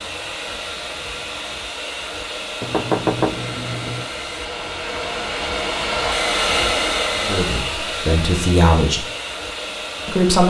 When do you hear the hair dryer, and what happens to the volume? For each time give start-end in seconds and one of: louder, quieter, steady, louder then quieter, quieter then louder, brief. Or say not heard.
0.0-10.4 louder then quieter.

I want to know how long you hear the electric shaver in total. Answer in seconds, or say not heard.
not heard.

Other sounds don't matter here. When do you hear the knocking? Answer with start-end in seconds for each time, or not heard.
2.6-4.1.